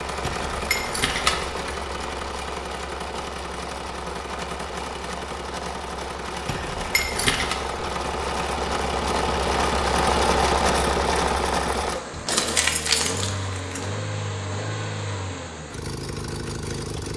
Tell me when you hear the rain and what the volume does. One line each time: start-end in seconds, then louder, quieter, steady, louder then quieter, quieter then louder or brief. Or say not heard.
not heard.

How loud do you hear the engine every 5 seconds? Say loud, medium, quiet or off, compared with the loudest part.
medium, loud, loud, medium.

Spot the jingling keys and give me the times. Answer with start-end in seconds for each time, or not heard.
0.2-1.8, 6.5-7.5, 12.1-13.8.